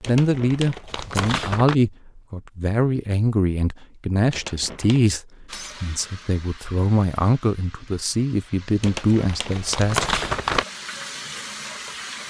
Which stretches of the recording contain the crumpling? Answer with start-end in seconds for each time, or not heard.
0.0-1.8, 4.3-5.0, 8.8-10.7.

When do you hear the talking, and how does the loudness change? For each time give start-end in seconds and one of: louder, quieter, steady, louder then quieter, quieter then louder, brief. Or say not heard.
0.1-10.2 steady.